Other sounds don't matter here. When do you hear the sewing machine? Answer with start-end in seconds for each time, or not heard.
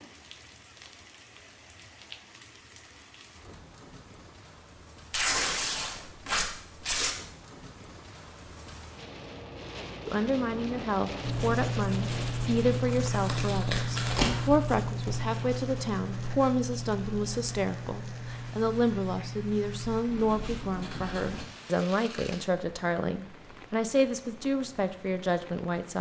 not heard.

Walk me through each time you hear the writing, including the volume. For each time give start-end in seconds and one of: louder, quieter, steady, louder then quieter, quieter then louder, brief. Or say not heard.
11.2-21.4 quieter.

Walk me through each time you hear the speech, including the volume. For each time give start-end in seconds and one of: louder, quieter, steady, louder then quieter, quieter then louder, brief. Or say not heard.
10.1-25.9 steady.